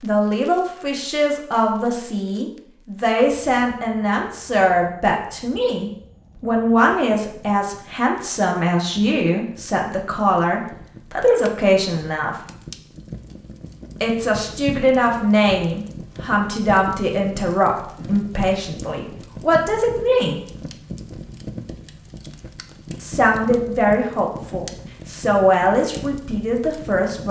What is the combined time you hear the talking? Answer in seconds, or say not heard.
23 s.